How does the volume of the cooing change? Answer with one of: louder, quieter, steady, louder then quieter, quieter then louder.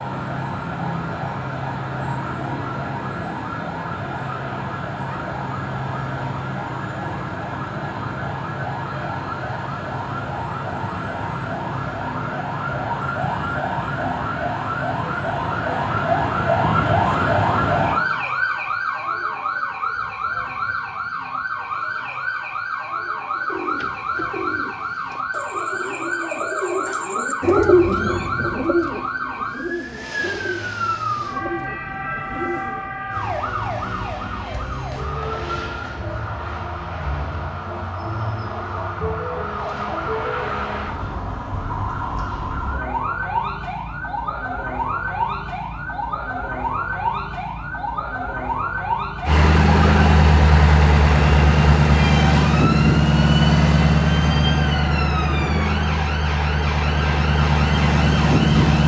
louder then quieter.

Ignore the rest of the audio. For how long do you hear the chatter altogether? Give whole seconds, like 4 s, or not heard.
not heard.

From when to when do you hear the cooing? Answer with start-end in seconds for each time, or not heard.
23.4-32.9.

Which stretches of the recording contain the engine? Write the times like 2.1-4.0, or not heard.
49.2-58.8.